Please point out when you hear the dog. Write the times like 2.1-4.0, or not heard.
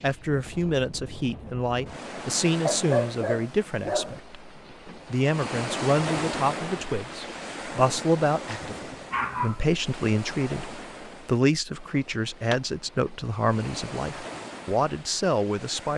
2.6-4.2, 8.6-9.7.